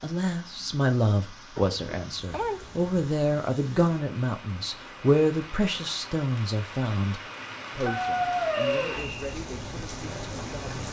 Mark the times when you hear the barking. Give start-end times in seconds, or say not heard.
1.6-3.0, 7.8-9.1.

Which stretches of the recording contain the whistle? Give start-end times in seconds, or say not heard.
8.6-9.4.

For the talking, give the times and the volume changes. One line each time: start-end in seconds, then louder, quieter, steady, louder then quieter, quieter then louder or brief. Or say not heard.
0.0-10.8 quieter.